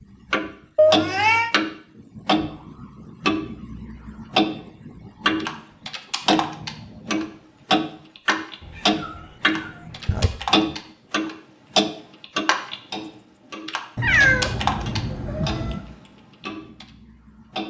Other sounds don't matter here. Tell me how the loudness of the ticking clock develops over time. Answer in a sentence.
The loudness of the ticking clock goes down.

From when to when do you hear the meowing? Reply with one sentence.
You can hear the meowing from 0.8 to 1.5 s, from 8.6 to 10.3 s and from 13.9 to 15.8 s.